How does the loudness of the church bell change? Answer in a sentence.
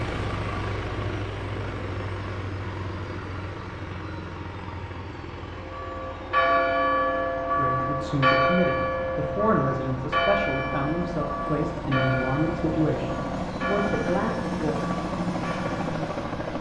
The loudness of the church bell goes down.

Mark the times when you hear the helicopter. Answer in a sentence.
The helicopter can be heard from 0.0 to 16.5 s.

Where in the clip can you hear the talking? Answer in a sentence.
You can hear the talking from 7.5 to 14.8 s.